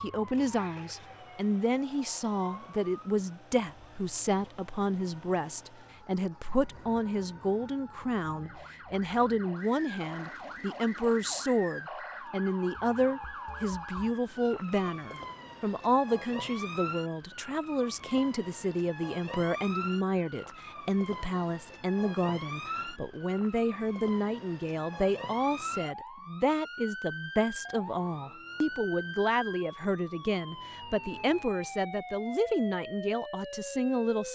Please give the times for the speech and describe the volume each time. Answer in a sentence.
The speech can be heard from 0.0 to 34.3 s, at a steady volume.